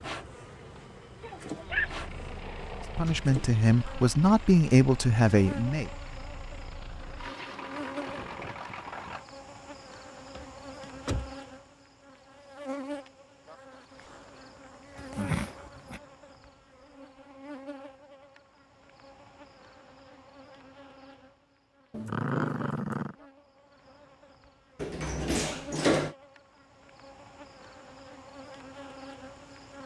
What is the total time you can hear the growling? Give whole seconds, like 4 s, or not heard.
4 s.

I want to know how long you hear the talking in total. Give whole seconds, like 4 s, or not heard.
3 s.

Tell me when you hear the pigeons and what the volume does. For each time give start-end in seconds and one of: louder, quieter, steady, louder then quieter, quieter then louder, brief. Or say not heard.
not heard.